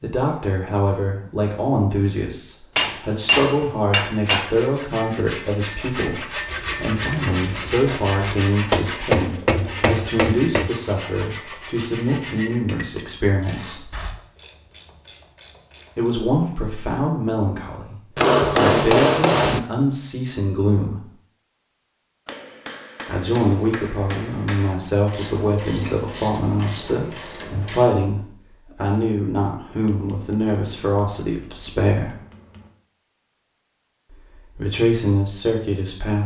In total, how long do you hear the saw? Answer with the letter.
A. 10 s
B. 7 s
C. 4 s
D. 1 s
A.